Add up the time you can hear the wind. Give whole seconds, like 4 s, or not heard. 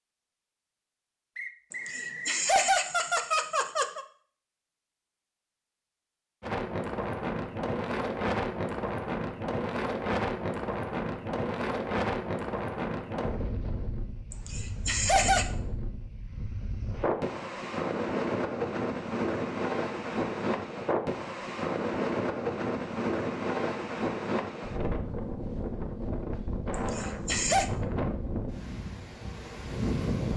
24 s.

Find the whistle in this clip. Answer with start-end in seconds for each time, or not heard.
1.4-2.5.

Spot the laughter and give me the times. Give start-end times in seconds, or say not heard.
1.7-4.0, 14.3-15.5, 26.7-27.6.